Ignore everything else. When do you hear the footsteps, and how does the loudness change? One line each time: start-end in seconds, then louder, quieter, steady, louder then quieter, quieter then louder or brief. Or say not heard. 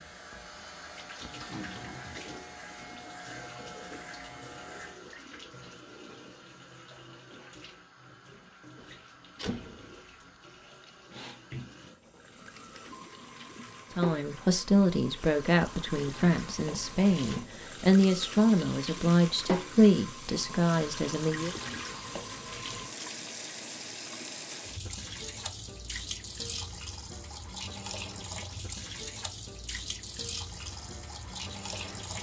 not heard.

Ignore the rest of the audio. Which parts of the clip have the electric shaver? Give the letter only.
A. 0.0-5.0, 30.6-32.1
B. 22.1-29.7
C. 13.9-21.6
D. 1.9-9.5
A.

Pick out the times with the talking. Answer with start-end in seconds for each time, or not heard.
13.9-21.6.